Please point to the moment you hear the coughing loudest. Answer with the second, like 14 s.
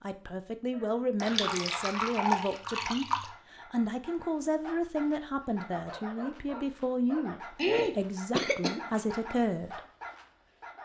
8 s.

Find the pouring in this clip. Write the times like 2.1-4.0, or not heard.
1.2-3.3.